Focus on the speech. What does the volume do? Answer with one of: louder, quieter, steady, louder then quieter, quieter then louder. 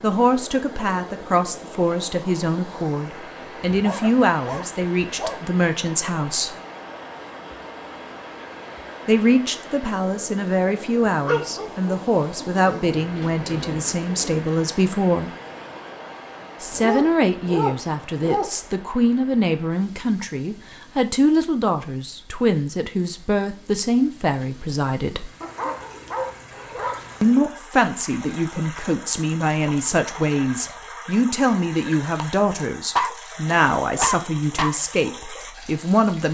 steady.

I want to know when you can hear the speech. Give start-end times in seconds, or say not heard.
0.0-6.5, 9.1-15.3, 16.6-25.3, 27.2-36.2.